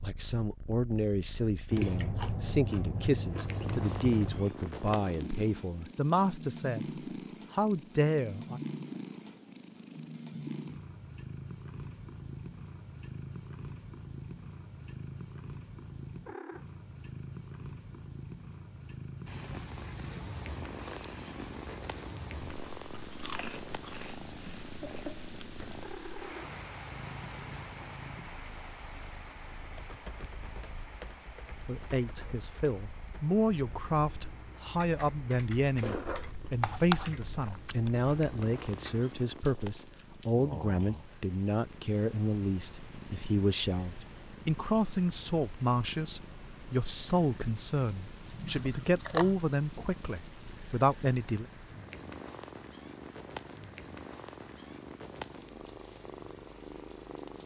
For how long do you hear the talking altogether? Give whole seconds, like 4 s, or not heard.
28 s.